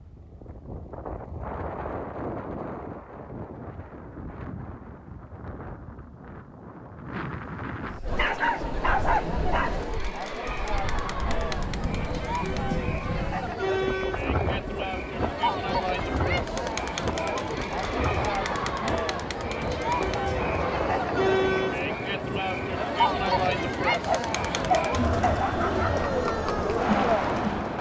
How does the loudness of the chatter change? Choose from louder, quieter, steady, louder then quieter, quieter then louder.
louder.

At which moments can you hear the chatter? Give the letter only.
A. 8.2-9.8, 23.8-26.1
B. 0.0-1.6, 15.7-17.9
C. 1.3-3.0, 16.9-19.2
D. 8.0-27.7
D.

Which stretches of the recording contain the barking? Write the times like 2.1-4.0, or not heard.
8.2-9.8, 23.8-26.1.